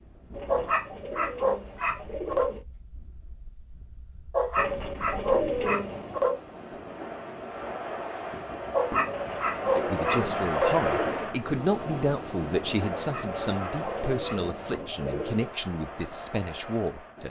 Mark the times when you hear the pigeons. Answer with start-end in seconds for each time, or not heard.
0.3-2.6, 4.5-6.2, 9.1-11.3, 13.2-15.5.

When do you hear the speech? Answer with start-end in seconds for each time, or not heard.
9.8-17.2.